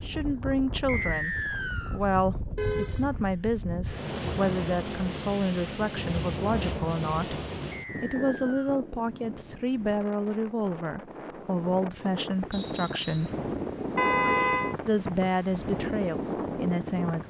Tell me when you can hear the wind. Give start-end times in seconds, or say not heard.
0.0-17.2.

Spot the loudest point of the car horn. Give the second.
14 s.